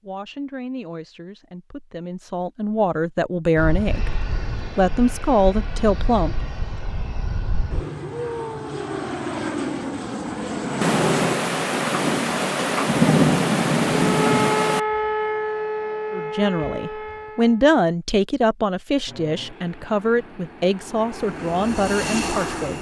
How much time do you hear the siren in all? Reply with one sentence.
You can hear the siren for 4 seconds altogether.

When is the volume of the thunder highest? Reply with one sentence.
The loudest moment of the thunder is at 13 seconds.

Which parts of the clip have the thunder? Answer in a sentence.
You can hear the thunder from 10.8 to 14.8 s.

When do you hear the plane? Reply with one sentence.
The plane can be heard from 3.5 to 11.3 s and from 19.1 to 22.7 s.